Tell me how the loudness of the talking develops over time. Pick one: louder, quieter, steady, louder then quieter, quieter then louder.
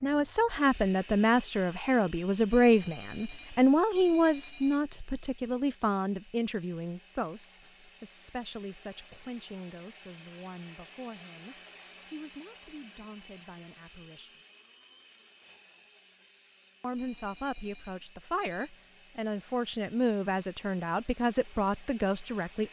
quieter then louder.